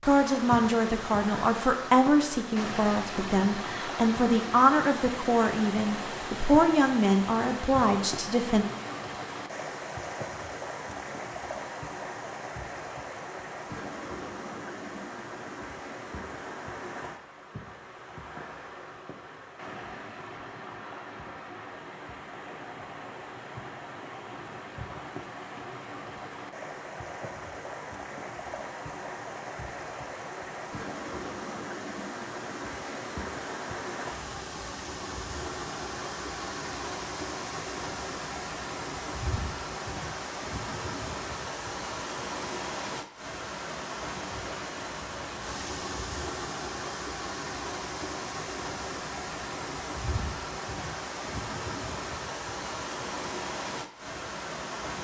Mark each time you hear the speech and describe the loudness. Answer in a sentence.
You can hear the speech from 0.1 to 8.7 s, at a steady volume.